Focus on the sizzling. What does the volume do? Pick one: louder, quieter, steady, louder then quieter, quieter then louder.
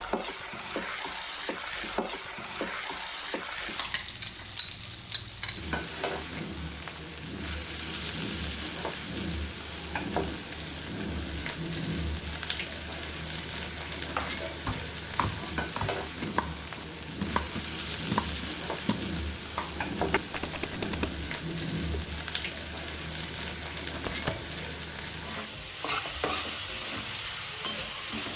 steady.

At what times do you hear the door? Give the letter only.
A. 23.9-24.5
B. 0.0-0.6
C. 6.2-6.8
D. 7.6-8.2
A.